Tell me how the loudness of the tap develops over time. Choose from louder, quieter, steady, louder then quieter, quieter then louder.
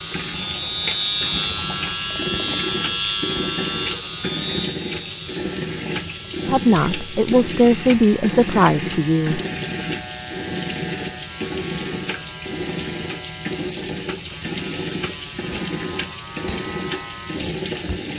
steady.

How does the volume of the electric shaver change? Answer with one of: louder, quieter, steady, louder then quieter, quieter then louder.
quieter.